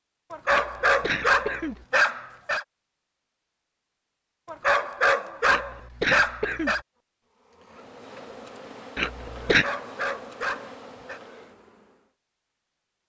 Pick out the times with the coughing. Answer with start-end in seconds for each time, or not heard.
0.5-1.9, 5.5-6.8, 8.9-9.7.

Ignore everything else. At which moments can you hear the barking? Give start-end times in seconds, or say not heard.
0.3-2.6, 4.5-6.8, 9.4-11.2.